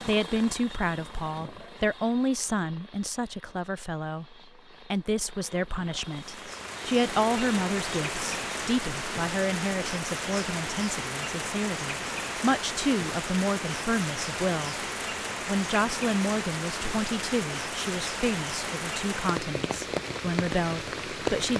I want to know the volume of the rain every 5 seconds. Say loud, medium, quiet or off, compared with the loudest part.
off, loud, loud, loud, loud.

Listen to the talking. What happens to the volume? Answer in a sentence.
The volume of the talking stays about the same.